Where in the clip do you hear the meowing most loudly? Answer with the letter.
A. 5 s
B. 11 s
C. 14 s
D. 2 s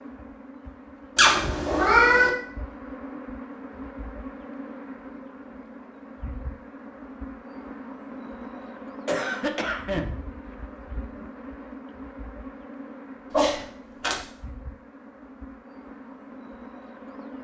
D.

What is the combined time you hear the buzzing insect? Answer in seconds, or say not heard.
17 s.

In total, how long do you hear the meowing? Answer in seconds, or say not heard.
2 s.